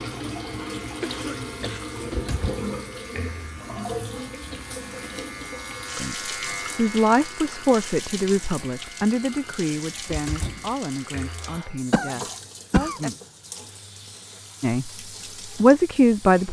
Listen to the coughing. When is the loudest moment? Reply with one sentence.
The loudest moment of the coughing is at 13 seconds.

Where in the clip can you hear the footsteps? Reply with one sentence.
The footsteps can't be heard in this clip.